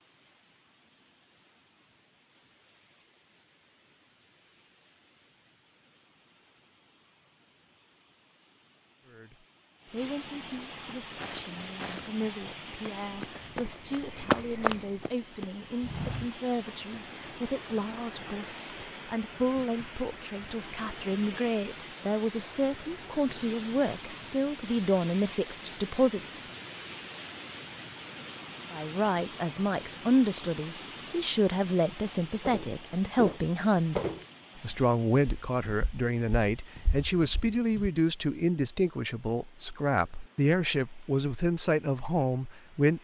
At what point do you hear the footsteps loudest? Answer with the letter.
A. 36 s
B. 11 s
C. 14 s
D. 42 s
C.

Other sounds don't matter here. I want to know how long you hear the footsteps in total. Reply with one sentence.
The footsteps can be heard for 11 seconds in total.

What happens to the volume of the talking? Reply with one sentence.
The loudness of the talking goes up.